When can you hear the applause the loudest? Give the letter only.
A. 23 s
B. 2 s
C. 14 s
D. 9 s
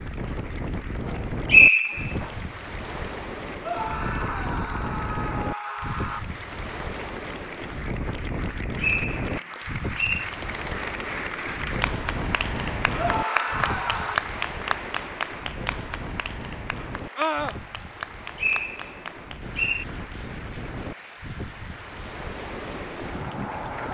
C.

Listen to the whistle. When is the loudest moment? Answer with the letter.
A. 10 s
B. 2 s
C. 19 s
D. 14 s
B.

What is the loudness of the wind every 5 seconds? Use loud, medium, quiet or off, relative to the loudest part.
loud, loud, loud, medium, loud.